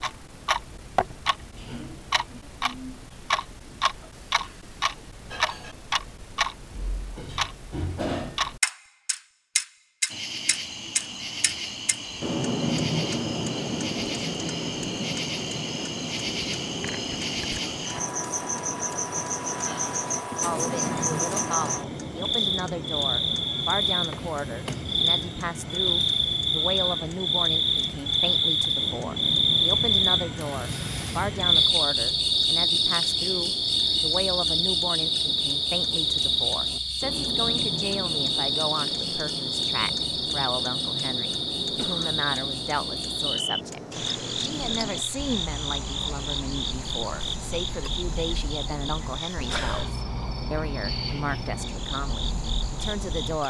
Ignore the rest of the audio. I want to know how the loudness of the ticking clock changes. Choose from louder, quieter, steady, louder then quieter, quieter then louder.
quieter.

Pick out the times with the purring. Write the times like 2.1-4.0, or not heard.
not heard.